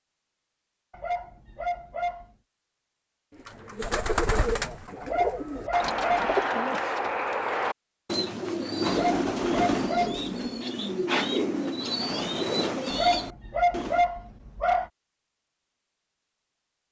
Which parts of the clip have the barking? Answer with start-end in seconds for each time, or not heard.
0.9-2.2, 5.0-6.3, 8.8-10.3, 12.9-14.9.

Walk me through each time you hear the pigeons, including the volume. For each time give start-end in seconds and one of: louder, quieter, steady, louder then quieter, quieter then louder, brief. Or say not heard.
3.4-14.1 steady.